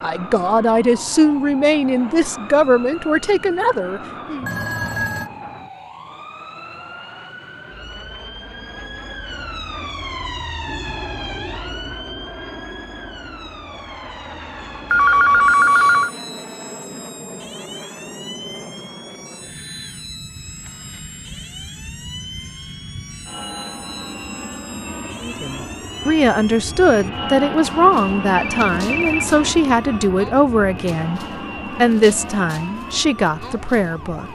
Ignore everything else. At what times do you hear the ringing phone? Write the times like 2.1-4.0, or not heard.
4.4-5.3, 14.9-16.1, 28.3-29.6.